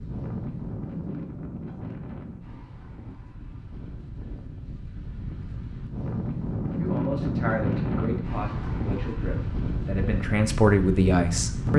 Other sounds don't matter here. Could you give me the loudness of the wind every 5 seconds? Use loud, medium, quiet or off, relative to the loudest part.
medium, loud, loud.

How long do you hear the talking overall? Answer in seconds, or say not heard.
5 s.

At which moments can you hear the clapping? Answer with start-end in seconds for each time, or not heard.
not heard.